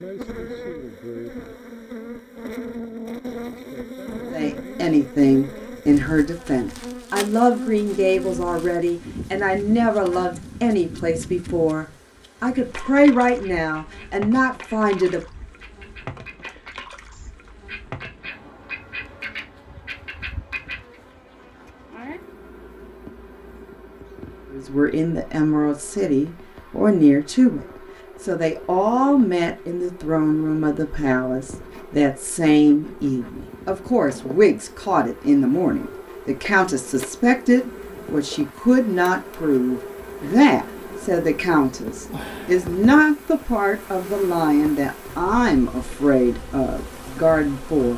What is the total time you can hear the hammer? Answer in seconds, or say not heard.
not heard.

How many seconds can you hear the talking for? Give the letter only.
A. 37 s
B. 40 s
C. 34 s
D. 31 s
C.